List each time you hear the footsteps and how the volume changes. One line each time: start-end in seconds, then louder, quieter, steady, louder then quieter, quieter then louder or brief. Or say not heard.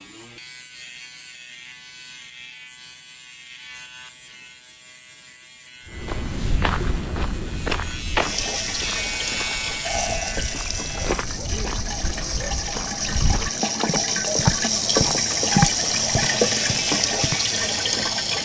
5.9-17.4 quieter then louder.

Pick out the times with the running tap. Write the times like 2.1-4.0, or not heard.
8.1-18.3.